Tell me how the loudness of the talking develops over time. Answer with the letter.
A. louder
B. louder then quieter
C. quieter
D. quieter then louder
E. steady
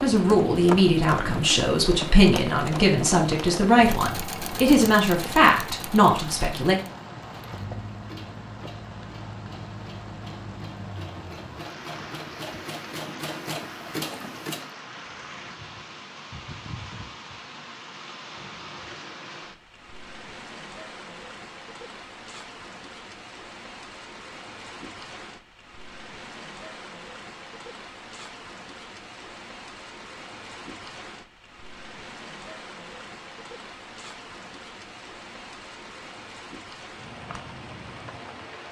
E.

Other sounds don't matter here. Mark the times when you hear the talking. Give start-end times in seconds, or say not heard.
0.0-6.8.